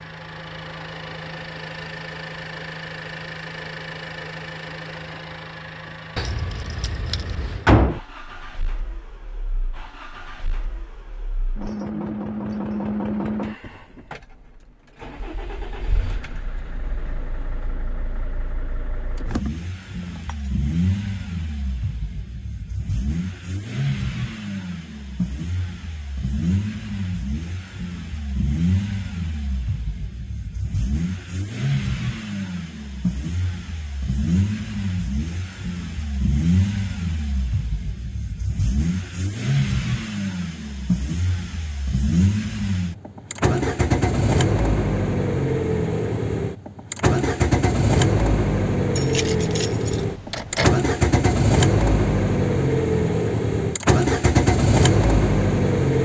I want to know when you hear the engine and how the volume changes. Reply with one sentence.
You can hear the engine from 0.0 to 56.0 s, getting louder.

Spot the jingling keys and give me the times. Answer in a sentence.
You can hear the jingling keys from 6.2 to 7.7 s, from 19.1 to 20.3 s and from 49.0 to 50.7 s.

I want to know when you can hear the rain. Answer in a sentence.
You can't hear the rain here.